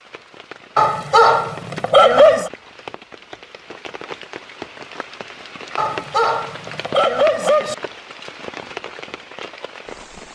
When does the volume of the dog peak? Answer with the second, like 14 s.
2 s.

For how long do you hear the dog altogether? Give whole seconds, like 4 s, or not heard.
4 s.